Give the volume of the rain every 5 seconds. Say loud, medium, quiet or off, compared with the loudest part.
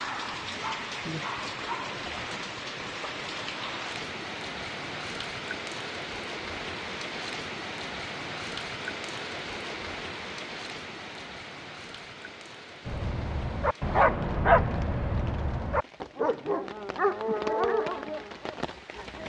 loud, loud, medium, medium.